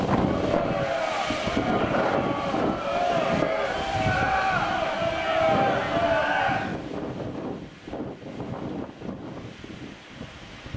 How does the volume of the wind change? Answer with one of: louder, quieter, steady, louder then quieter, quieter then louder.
quieter.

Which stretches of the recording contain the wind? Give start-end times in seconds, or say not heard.
0.0-10.7.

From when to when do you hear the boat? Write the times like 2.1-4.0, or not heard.
not heard.